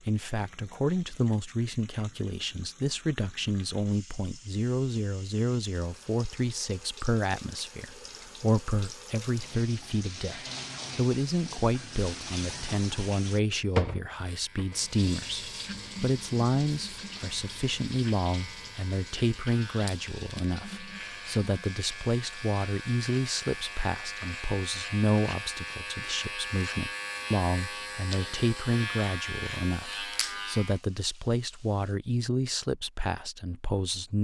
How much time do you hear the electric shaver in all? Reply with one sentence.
You can hear the electric shaver for 17 seconds altogether.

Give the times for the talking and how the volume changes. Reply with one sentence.
You can hear the talking from 0.1 to 34.2 s, at a steady volume.